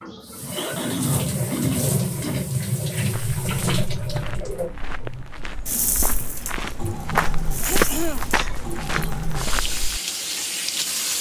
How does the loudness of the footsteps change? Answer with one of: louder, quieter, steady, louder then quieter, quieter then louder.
louder then quieter.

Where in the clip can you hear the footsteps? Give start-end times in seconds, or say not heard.
3.1-10.0.